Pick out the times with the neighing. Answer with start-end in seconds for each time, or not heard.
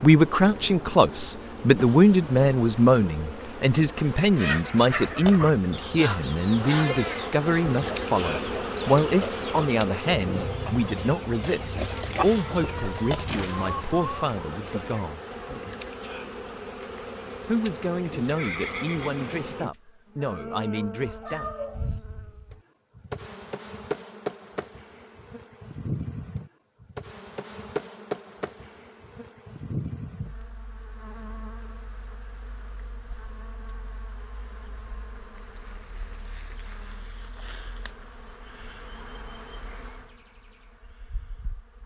18.2-19.5.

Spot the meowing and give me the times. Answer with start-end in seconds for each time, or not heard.
21.2-21.9.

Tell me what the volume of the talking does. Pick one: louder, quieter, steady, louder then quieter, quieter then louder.
quieter.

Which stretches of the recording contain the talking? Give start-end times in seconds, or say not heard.
0.0-15.2, 17.4-21.5.